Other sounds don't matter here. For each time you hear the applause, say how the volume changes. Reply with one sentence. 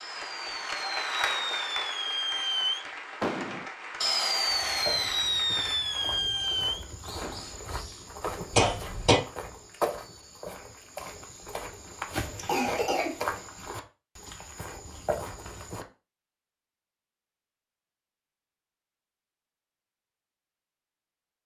The applause can be heard from 0.0 to 6.2 s, getting quieter.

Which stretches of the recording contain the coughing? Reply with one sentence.
You can hear the coughing from 8.6 to 9.2 s and from 12.1 to 13.4 s.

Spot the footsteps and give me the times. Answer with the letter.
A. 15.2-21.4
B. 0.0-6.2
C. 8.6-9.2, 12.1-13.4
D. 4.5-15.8
D.